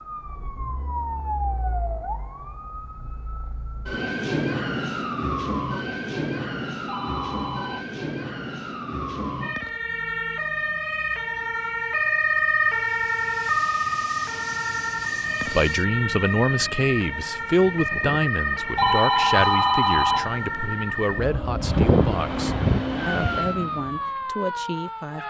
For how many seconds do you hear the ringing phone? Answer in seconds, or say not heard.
3 s.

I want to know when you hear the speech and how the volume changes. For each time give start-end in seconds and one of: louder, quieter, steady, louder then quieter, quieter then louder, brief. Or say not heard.
15.4-25.2 quieter.